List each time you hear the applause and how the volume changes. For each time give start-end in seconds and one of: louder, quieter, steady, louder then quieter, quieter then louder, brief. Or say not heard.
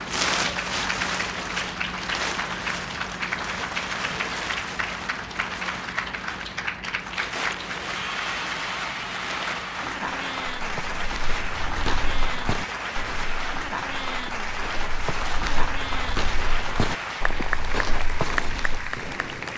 0.0-19.5 steady.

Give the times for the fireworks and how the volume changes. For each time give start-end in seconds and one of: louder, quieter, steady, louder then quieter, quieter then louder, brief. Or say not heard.
not heard.